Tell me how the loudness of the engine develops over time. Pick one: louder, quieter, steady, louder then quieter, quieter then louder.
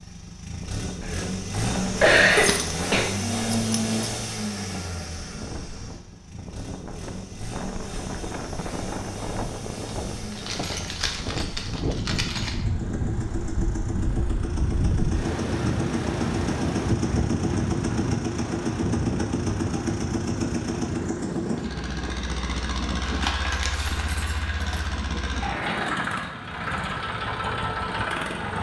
quieter then louder.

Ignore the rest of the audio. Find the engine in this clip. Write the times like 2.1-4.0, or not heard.
0.0-28.5.